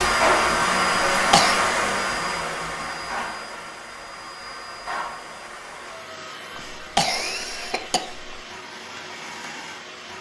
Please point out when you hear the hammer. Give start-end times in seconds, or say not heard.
not heard.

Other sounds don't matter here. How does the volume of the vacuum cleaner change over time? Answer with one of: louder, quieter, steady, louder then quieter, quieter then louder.
quieter.